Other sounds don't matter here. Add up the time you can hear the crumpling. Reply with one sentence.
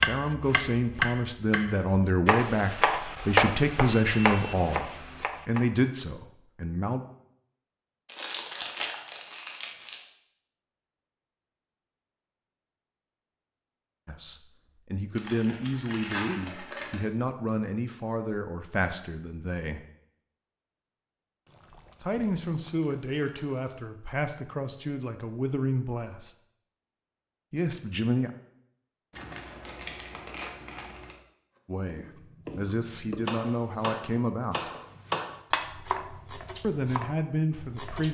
The crumpling can be heard for 6 seconds in total.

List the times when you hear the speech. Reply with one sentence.
The speech can be heard from 0.1 to 7.0 s, from 14.1 to 19.9 s, from 22.0 to 26.3 s, from 27.5 to 28.3 s, from 31.6 to 34.7 s and from 36.6 to 38.0 s.